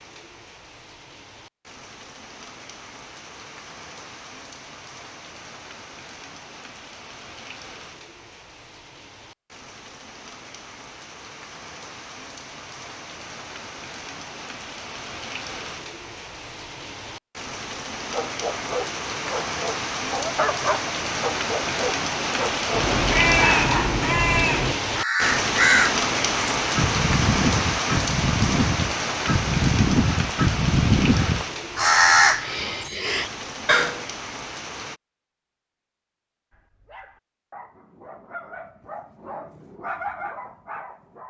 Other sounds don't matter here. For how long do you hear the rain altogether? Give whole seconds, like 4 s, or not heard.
35 s.